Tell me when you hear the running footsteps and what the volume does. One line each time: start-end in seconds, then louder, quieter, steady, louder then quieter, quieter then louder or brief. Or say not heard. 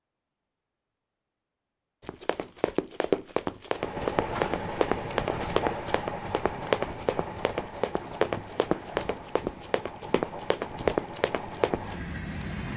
2.0-12.4 steady.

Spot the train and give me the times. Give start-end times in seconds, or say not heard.
3.7-12.7.